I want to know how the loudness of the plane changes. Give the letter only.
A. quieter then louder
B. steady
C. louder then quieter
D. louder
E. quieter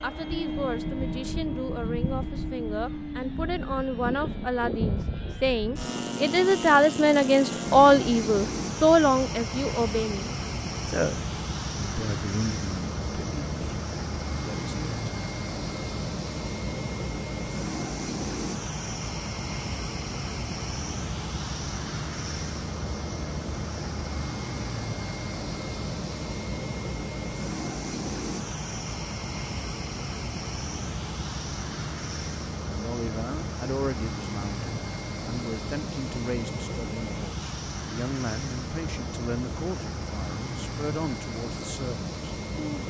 B.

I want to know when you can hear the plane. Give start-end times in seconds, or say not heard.
0.0-42.8.